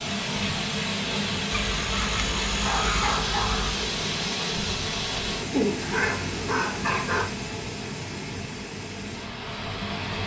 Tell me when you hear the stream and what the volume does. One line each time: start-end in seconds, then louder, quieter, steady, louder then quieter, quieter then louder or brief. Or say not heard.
0.0-10.2 quieter.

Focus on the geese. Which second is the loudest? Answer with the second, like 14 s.
3 s.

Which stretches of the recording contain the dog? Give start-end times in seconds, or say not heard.
2.6-3.6, 5.8-7.2.